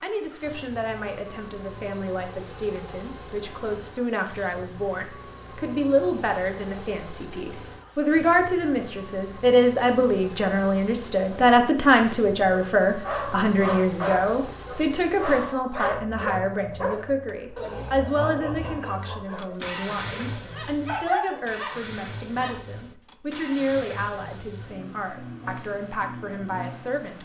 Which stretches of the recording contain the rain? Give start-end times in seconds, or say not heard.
not heard.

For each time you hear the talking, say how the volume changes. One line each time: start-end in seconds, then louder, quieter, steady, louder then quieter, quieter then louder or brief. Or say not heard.
0.0-27.2 louder then quieter.